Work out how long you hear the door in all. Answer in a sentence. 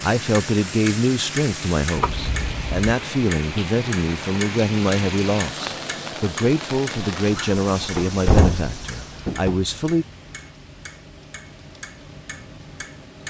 The door can be heard for 3 seconds in total.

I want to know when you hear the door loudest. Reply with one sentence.
The loudest moment of the door is at 8 seconds.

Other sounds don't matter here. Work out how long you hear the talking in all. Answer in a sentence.
You can hear the talking for 10 seconds altogether.